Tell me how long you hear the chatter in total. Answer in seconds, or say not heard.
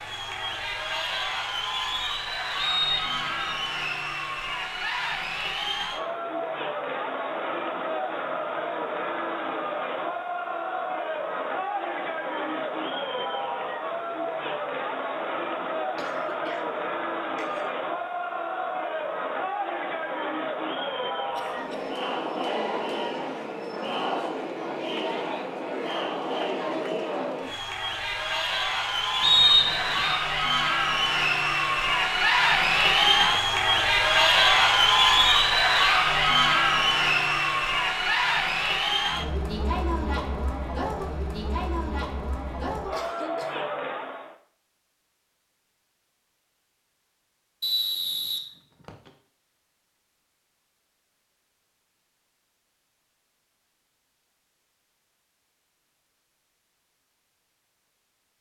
44 s.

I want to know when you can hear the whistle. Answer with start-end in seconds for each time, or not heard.
2.5-3.5, 29.2-30.2, 47.6-49.1.